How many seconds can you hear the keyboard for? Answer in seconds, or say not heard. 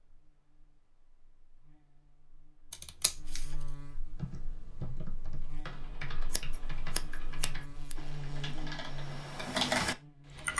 6 s.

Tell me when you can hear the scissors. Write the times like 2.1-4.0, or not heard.
2.7-3.5, 6.3-8.0.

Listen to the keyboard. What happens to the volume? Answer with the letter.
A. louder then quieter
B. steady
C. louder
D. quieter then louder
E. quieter
C.